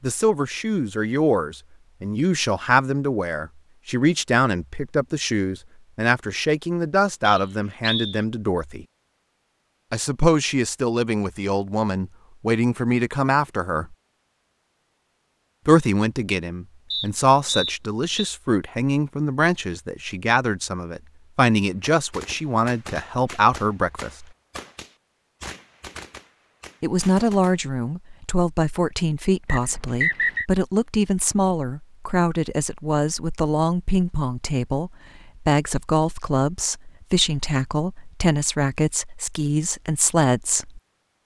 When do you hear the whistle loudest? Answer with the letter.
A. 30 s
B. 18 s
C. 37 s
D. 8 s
A.